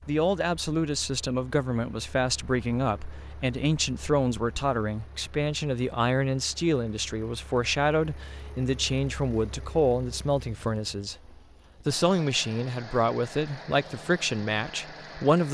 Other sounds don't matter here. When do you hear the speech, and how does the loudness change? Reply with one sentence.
You can hear the speech from 0.1 to 15.4 s, at a steady volume.